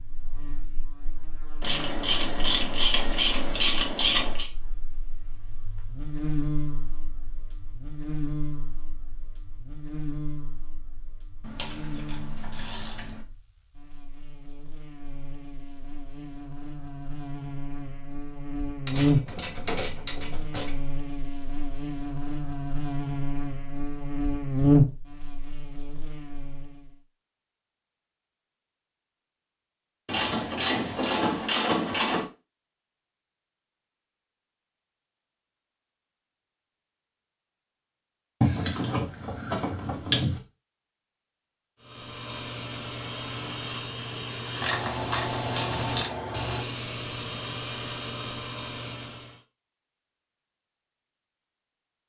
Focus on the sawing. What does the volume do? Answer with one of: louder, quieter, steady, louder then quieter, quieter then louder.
steady.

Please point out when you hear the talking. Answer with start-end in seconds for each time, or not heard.
not heard.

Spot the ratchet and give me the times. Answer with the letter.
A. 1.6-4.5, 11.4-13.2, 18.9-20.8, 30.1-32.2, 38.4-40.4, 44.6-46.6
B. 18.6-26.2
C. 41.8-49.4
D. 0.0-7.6
A.